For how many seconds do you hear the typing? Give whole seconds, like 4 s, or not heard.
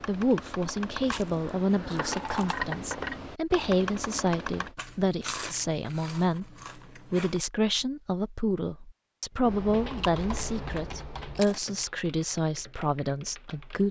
9 s.